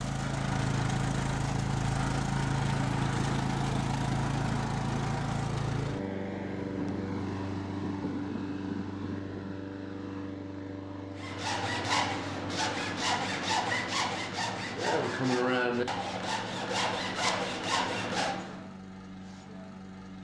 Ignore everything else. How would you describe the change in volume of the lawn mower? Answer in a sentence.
The volume of the lawn mower goes down.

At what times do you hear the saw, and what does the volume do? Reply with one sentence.
You can hear the saw from 11.2 to 18.7 s, at a steady volume.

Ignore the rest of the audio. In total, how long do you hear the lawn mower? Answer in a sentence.
You can hear the lawn mower for 20 seconds altogether.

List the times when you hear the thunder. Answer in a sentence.
The thunder can be heard from 6.6 to 9.6 s.